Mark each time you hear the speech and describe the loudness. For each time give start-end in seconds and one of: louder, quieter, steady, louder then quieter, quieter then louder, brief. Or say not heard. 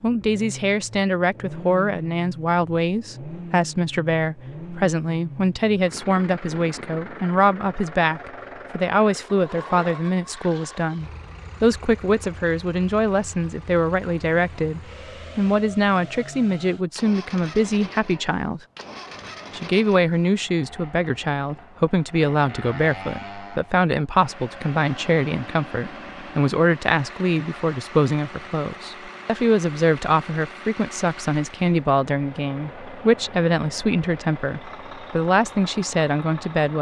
0.0-18.6 steady
19.6-36.7 steady.